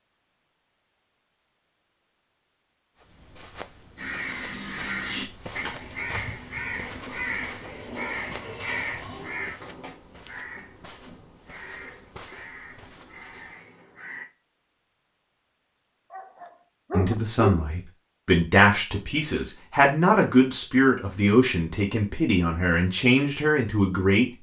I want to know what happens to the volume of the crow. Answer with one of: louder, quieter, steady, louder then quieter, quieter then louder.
quieter.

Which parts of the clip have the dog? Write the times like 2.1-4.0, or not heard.
16.1-17.6.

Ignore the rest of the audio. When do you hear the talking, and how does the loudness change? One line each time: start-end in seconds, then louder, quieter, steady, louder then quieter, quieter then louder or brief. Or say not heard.
16.9-24.3 steady.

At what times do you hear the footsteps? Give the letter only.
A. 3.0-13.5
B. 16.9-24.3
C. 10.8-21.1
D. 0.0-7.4
A.